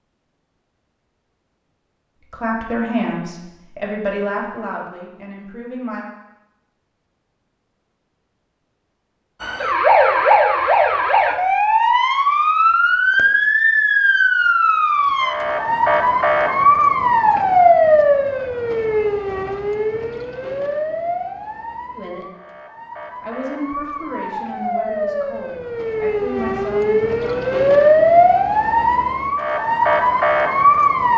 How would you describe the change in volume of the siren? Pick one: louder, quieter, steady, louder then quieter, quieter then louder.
quieter then louder.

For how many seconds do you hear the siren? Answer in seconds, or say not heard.
22 s.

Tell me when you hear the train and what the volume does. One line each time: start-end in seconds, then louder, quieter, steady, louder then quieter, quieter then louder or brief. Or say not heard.
not heard.